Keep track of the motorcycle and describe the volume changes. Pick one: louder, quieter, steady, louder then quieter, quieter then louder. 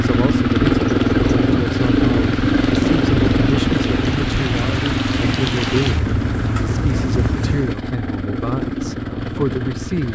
quieter.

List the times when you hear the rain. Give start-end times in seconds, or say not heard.
0.0-7.8.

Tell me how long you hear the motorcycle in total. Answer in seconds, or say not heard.
10 s.